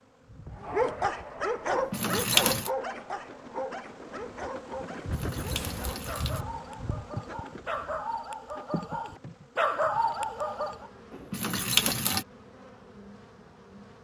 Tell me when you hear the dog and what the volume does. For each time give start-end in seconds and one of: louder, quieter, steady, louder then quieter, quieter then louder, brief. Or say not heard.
0.6-10.9 quieter then louder.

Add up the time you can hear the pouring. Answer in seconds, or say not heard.
4 s.